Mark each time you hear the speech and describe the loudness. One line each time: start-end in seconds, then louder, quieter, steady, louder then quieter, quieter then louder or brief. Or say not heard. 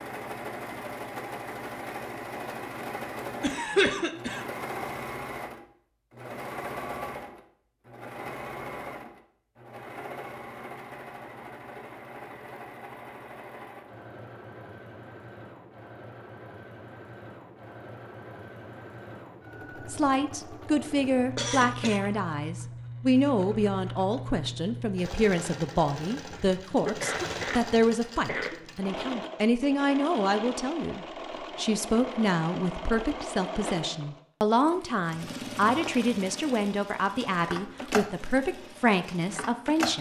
19.8-39.9 steady.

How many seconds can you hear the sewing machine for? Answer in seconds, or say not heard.
40 s.